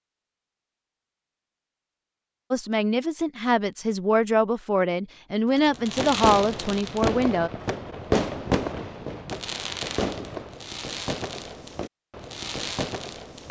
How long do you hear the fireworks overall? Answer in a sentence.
You can hear the fireworks for 8 seconds altogether.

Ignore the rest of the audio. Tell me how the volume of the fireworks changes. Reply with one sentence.
The volume of the fireworks goes down.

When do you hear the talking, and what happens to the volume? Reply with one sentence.
You can hear the talking from 2.5 to 7.5 s, at a steady volume.